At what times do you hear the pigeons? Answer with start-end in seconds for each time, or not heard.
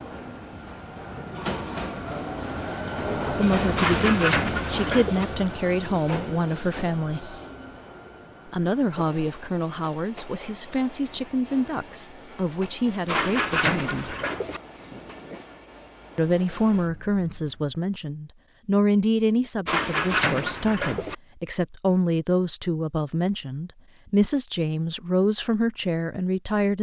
3.8-5.2, 13.1-14.6, 19.6-21.1.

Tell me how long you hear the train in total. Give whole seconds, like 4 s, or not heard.
18 s.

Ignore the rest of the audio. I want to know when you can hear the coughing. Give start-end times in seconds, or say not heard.
not heard.